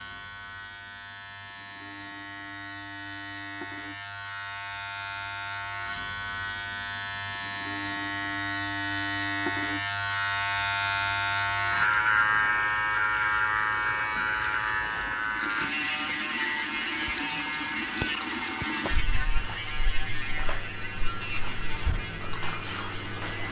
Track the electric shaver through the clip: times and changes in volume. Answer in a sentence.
You can hear the electric shaver from 0.0 to 23.4 s, getting louder then quieter.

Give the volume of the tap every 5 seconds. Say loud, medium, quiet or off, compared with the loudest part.
off, off, medium, loud, loud.